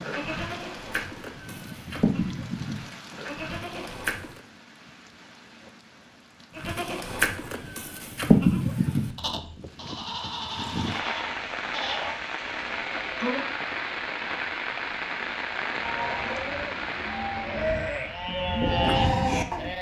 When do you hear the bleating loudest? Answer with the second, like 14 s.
8 s.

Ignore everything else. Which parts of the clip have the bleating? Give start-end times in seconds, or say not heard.
0.0-4.4, 6.5-13.4, 15.7-19.7.